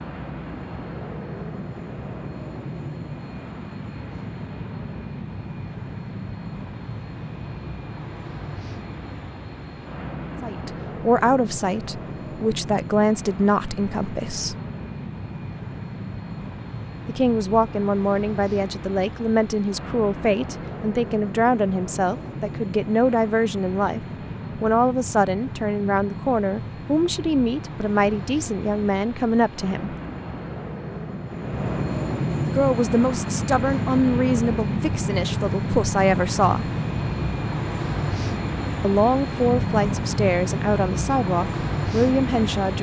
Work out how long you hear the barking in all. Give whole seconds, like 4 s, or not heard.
not heard.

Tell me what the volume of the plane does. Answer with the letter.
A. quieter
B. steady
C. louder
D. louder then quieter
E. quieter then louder
C.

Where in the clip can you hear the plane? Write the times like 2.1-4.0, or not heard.
0.0-42.7.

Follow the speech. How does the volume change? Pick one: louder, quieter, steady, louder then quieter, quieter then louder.
steady.